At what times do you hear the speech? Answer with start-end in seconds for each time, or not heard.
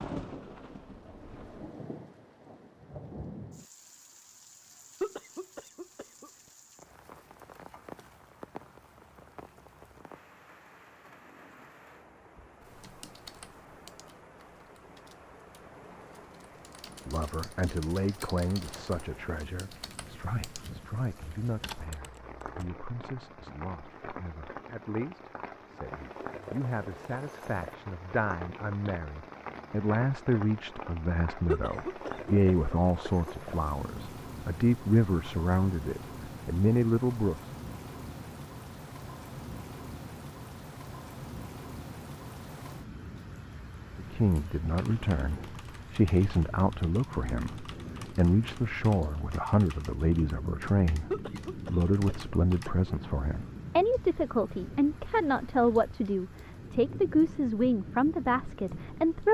16.9-37.5, 44.0-59.2.